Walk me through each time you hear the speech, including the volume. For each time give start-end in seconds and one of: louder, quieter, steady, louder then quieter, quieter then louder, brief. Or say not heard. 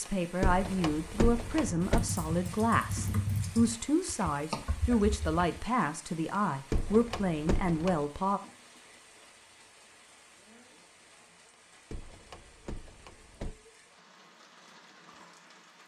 0.0-8.4 steady.